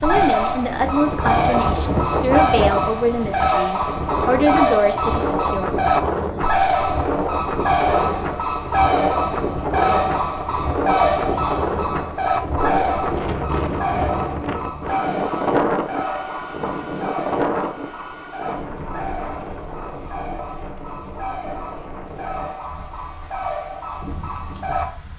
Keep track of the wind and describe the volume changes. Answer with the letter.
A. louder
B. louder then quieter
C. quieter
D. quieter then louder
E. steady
C.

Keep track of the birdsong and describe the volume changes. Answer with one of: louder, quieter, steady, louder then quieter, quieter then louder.
quieter.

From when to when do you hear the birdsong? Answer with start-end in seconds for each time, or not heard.
0.0-24.9.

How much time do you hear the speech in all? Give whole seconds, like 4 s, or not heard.
6 s.